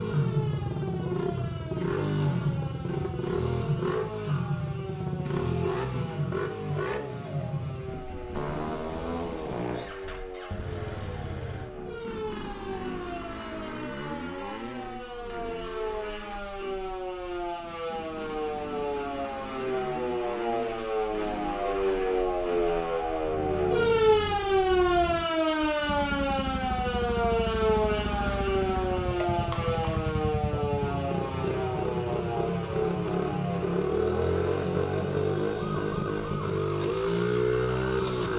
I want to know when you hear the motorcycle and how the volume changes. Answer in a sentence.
You can hear the motorcycle from 0.0 to 38.3 s, getting quieter then louder.